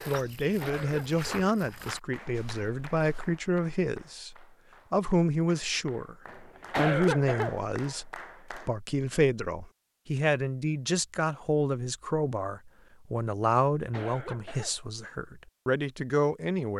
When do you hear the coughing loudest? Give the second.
7 s.